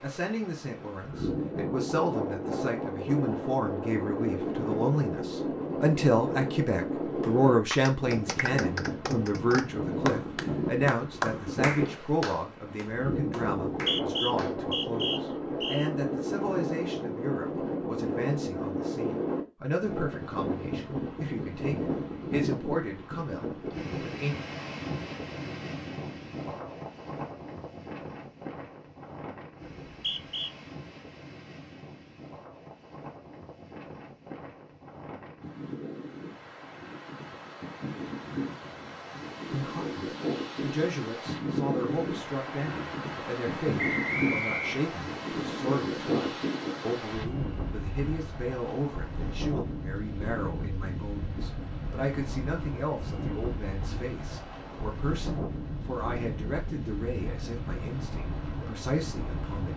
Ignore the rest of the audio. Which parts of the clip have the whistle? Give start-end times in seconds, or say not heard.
13.7-15.9, 29.9-30.5, 43.8-44.8.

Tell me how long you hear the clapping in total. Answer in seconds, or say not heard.
7 s.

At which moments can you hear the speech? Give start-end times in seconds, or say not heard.
0.0-24.4, 39.5-59.7.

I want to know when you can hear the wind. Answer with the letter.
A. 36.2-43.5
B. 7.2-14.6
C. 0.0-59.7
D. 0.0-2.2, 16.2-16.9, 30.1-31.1
C.